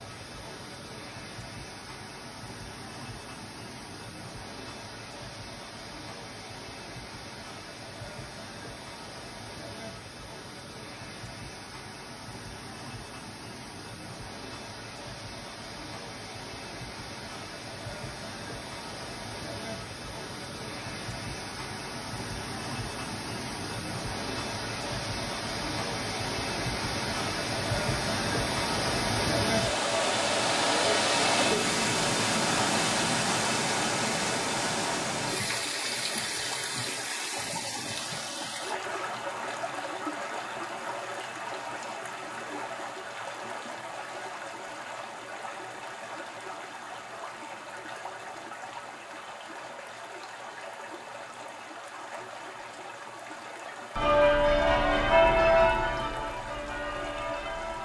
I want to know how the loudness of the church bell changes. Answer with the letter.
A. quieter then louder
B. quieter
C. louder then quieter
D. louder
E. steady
B.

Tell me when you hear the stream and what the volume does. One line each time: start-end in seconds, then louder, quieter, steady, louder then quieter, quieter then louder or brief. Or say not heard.
0.0-57.8 louder then quieter.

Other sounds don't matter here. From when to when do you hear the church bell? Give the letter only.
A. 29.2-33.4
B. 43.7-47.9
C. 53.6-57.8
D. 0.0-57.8
C.